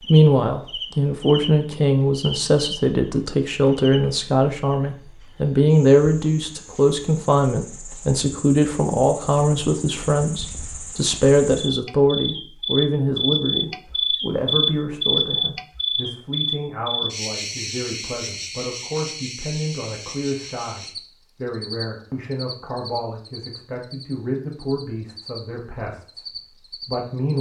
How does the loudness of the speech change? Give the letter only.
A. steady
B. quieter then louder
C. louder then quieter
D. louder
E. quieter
E.